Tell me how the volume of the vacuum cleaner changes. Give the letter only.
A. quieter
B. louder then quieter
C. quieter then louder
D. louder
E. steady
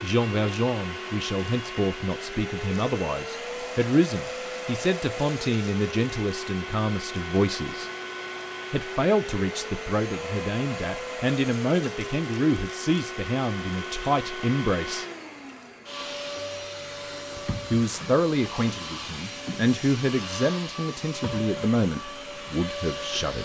E.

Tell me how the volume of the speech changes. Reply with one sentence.
The loudness of the speech stays about the same.